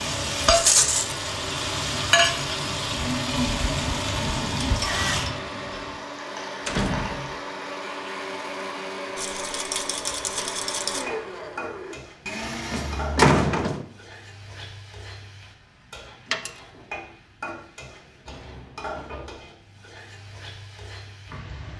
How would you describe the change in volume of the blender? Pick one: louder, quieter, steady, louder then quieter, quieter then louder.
steady.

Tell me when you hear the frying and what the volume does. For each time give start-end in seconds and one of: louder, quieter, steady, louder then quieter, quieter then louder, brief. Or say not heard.
0.0-21.7 quieter.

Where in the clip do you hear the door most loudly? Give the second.
13 s.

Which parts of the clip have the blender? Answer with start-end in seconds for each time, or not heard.
0.0-13.2.